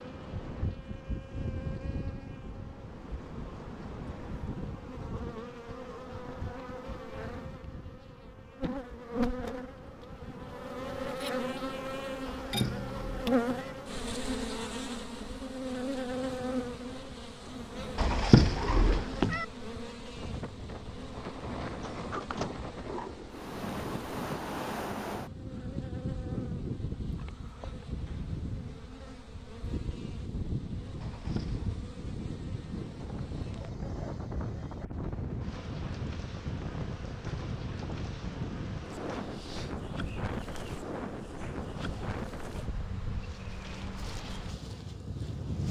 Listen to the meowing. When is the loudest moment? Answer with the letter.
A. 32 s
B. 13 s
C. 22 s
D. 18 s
D.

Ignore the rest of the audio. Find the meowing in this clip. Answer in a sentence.
You can hear the meowing from 12.2 to 13.8 s, from 17.9 to 19.4 s and from 31.0 to 31.8 s.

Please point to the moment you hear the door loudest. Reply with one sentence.
The volume of the door peaks at 22 seconds.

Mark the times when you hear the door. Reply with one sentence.
The door can be heard from 21.7 to 23.6 s.